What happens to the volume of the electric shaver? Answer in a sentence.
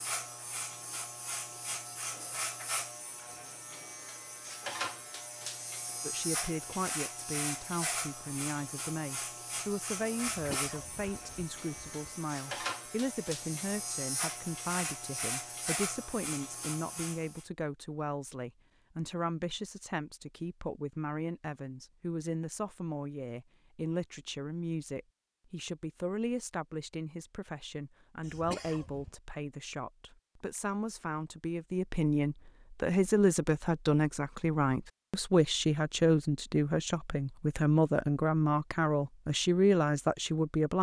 The loudness of the electric shaver stays about the same.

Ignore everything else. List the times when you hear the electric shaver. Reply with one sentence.
The electric shaver can be heard from 0.0 to 17.4 s.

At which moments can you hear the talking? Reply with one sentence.
You can hear the talking from 6.0 to 40.7 s.